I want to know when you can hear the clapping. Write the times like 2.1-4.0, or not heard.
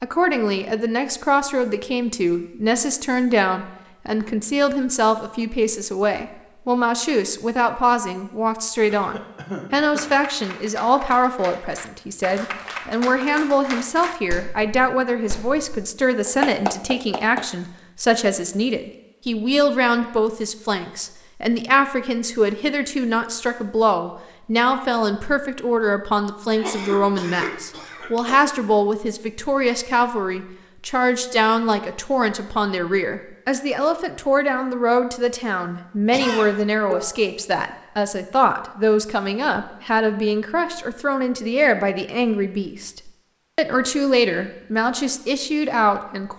9.9-17.4.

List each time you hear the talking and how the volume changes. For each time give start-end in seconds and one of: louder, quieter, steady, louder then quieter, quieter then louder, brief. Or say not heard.
0.0-46.3 steady.